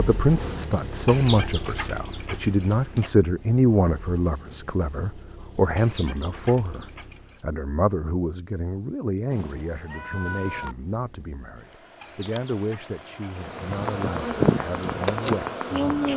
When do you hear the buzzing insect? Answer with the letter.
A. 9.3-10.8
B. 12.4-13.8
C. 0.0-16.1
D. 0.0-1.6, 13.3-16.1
D.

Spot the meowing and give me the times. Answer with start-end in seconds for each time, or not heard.
9.3-10.8.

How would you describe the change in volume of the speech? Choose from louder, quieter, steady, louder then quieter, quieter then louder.
quieter.